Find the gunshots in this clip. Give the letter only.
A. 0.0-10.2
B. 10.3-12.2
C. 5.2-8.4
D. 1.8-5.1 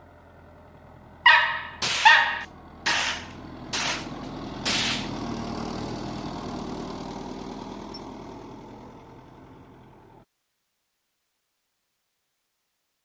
D.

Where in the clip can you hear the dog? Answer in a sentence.
You can hear the dog from 1.2 to 3.1 s.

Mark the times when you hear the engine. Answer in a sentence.
You can hear the engine from 0.0 to 10.2 s.